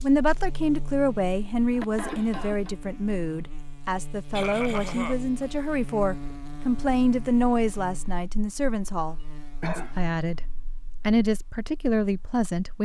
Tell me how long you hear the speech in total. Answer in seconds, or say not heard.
12 s.